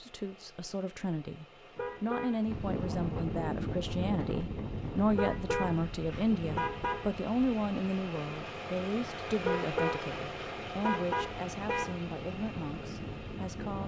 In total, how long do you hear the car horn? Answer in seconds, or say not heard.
5 s.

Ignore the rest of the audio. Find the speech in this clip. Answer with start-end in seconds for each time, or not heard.
0.0-13.8.